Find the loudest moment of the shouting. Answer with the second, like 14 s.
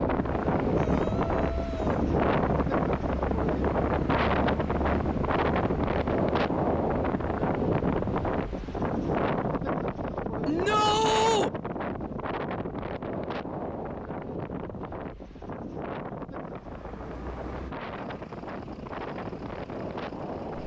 11 s.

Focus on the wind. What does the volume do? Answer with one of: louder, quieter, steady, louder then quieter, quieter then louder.
quieter.